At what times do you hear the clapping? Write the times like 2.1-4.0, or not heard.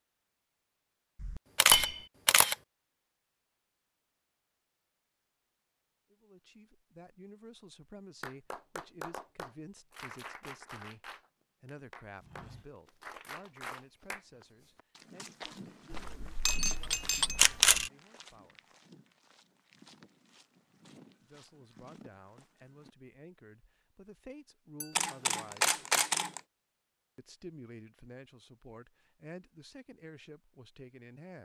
8.2-14.2.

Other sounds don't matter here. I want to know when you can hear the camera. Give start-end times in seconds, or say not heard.
1.2-2.5, 15.9-17.9, 24.9-26.4.